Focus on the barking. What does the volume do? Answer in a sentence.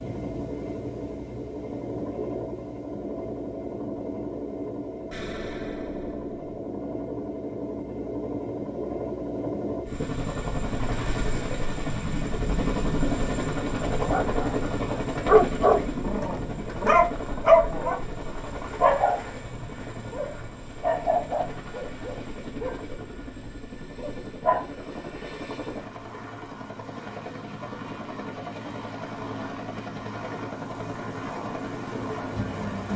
The loudness of the barking goes down.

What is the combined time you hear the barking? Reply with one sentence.
You can hear the barking for 10 seconds altogether.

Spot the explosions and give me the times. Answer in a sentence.
The explosions can be heard from 5.1 to 6.5 s.